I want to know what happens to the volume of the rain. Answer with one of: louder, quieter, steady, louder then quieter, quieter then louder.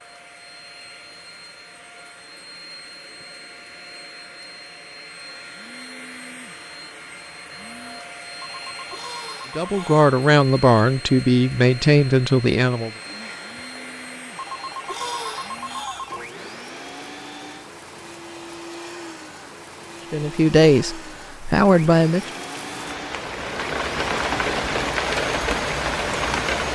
louder.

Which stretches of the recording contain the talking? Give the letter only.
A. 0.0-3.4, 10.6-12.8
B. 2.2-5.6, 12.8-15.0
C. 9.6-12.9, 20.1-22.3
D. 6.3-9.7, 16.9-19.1
C.